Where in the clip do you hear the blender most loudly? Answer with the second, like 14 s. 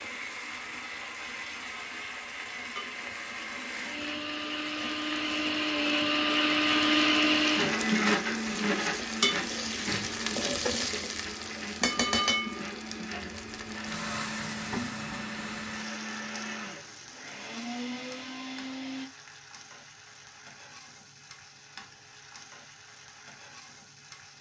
7 s.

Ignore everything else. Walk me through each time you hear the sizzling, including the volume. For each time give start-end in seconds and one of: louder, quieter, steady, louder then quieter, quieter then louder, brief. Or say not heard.
0.0-24.3 louder then quieter.